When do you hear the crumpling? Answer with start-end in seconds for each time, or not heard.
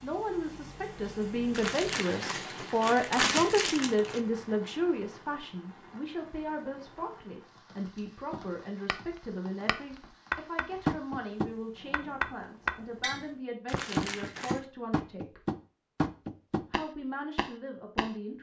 1.5-4.2, 13.7-14.7.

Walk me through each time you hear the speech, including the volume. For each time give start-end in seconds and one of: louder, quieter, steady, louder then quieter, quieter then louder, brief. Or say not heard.
0.0-15.4 quieter
16.7-18.3 brief.